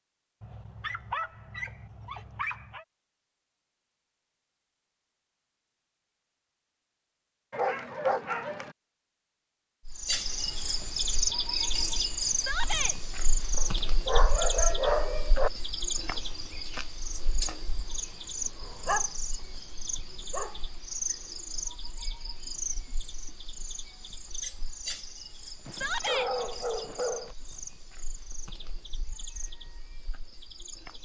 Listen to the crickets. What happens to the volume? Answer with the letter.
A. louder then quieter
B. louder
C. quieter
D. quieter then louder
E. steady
C.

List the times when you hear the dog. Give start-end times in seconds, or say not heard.
0.4-2.9, 7.5-8.8, 13.6-15.5, 18.8-20.8, 25.6-27.4.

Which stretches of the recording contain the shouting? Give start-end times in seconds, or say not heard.
12.3-12.9, 25.7-26.3.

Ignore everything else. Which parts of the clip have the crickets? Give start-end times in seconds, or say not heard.
9.8-31.0.